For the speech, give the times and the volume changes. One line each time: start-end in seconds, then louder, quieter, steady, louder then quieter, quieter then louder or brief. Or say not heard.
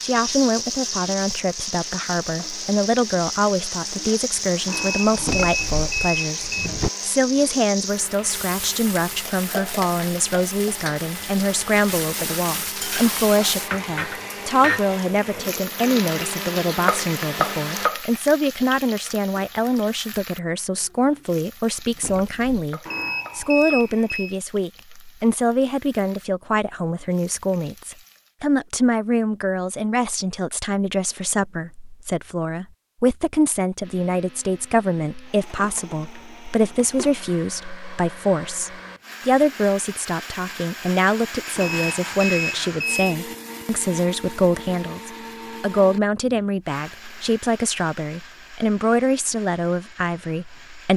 0.0-50.9 steady.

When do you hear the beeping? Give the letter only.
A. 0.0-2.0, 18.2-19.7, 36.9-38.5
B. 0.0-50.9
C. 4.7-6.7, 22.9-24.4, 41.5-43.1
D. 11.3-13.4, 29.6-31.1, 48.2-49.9
C.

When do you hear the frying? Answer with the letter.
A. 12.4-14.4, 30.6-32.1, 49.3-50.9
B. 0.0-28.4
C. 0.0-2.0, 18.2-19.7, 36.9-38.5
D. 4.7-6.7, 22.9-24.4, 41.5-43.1
B.